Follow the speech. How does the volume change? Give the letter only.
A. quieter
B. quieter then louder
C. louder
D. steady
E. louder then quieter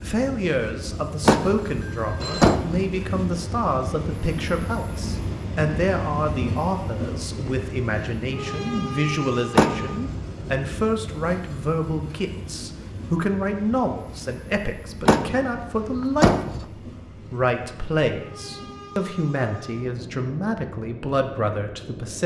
D.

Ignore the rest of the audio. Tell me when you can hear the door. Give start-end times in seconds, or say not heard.
1.2-2.9, 9.6-10.2, 15.1-16.6.